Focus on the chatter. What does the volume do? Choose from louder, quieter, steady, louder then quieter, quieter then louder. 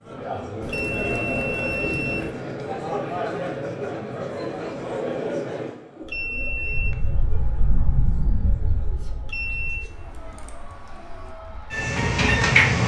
quieter.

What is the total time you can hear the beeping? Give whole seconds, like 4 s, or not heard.
3 s.